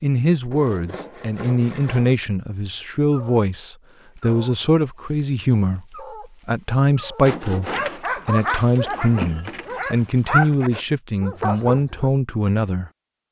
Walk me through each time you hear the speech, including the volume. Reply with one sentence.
You can hear the speech from 0.0 to 12.9 s, at a steady volume.